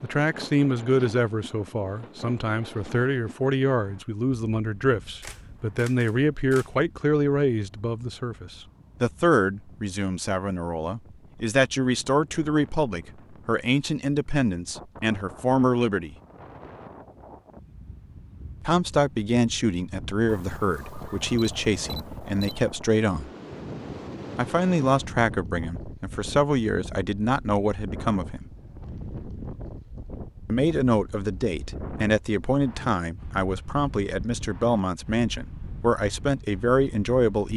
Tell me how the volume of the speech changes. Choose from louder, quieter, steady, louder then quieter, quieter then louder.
steady.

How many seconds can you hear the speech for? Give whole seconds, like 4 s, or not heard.
32 s.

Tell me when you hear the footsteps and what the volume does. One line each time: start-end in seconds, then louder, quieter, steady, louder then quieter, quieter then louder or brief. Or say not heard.
not heard.